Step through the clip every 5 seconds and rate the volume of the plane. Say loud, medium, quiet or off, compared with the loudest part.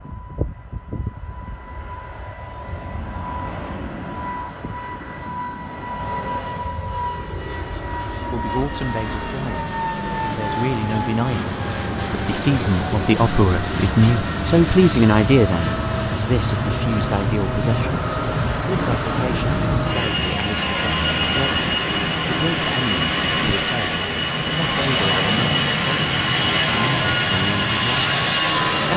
quiet, medium, medium, loud, loud, loud.